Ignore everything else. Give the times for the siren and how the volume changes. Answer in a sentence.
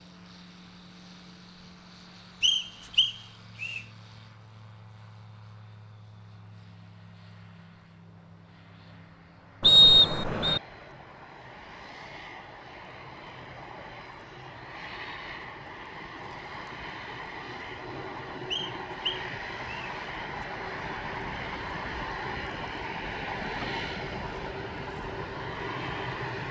You can't hear the siren here.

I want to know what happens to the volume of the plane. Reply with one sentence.
The loudness of the plane goes up.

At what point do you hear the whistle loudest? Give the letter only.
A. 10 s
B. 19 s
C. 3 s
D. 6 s
A.